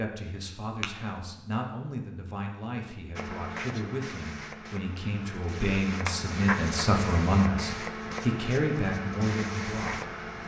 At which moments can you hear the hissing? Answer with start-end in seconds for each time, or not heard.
3.1-10.4.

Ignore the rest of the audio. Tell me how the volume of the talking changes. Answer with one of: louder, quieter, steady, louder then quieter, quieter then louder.
louder.